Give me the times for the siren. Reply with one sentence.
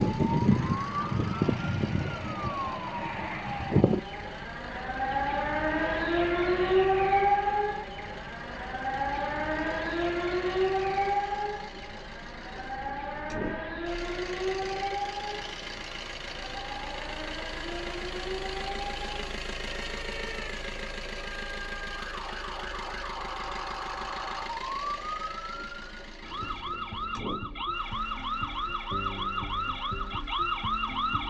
The siren can be heard from 0.0 to 31.2 s.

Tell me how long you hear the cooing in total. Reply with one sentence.
You can't hear the cooing here.